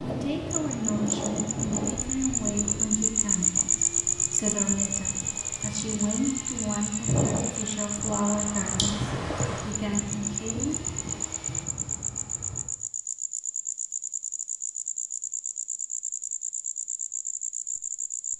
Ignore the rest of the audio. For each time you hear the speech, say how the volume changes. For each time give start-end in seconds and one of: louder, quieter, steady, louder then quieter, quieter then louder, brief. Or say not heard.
0.0-11.0 steady.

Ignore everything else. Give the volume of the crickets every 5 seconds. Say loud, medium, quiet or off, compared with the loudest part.
loud, medium, medium, medium.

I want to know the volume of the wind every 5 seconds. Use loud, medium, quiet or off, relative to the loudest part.
loud, loud, medium, off.